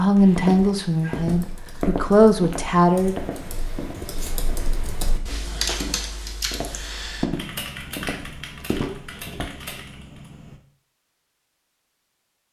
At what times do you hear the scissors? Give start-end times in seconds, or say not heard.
8.8-9.8.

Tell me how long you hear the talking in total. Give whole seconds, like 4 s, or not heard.
3 s.